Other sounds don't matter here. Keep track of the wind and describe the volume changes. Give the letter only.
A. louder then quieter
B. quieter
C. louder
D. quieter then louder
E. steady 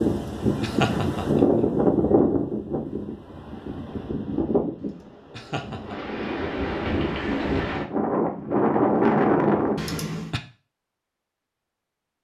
D.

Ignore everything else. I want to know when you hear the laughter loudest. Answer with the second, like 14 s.
1 s.